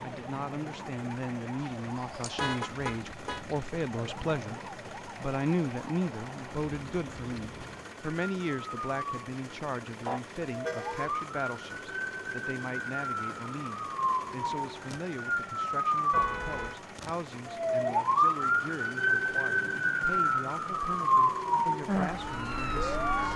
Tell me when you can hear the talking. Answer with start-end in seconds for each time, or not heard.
0.0-23.3.